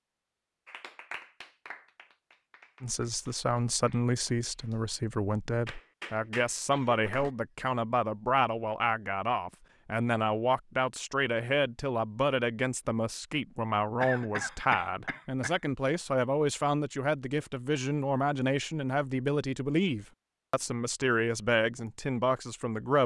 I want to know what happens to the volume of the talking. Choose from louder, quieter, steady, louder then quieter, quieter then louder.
steady.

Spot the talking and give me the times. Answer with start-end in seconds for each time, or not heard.
2.8-23.0.